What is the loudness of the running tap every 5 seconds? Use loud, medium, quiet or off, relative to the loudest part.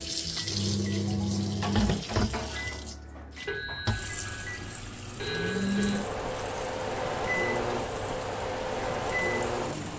loud, medium.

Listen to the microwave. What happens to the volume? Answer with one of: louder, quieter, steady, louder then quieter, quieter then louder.
quieter then louder.